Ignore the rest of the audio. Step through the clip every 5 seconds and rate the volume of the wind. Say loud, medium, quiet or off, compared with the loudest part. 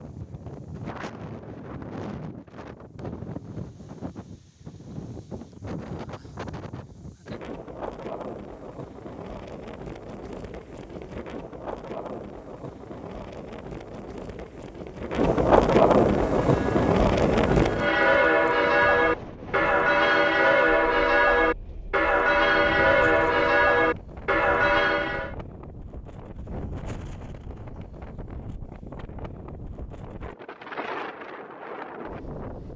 quiet, quiet, quiet, loud, quiet, quiet, quiet.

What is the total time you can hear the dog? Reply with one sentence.
The dog can't be heard in this clip.